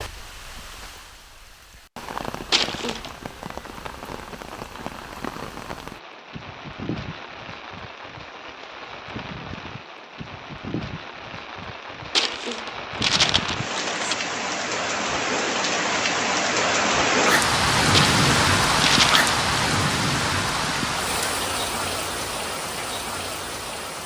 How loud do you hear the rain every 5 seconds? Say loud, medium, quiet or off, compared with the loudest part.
quiet, quiet, medium, loud, medium.